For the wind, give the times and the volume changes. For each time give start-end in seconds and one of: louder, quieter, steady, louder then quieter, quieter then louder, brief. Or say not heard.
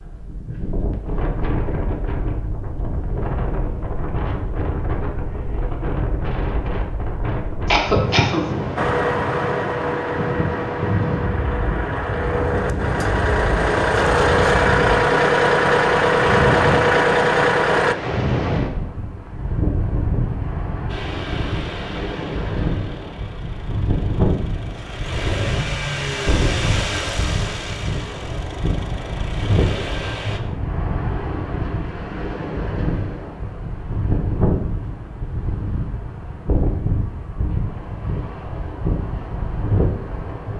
0.0-40.5 steady.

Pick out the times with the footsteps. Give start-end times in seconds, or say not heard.
not heard.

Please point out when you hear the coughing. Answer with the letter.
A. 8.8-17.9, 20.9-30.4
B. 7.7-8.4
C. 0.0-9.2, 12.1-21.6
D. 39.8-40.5
B.